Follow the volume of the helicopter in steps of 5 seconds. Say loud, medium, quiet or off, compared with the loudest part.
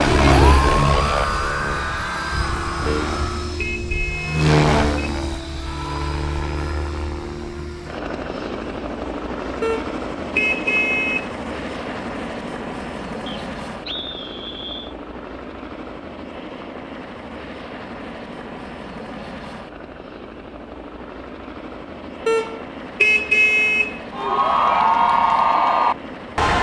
loud, medium, medium, quiet, quiet, quiet.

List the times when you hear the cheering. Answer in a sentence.
You can hear the cheering from 0.0 to 3.6 s and from 24.1 to 26.5 s.